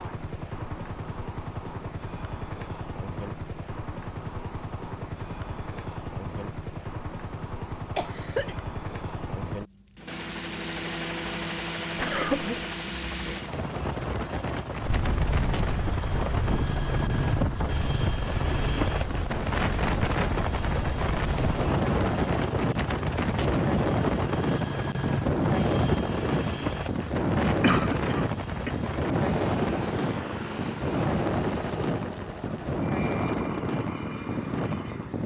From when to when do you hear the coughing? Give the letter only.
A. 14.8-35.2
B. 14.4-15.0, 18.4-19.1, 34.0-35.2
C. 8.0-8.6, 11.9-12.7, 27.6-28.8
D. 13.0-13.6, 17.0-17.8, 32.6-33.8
C.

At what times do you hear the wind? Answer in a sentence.
The wind can be heard from 14.8 to 35.2 s.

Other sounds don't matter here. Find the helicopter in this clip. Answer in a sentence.
You can hear the helicopter from 0.0 to 35.2 s.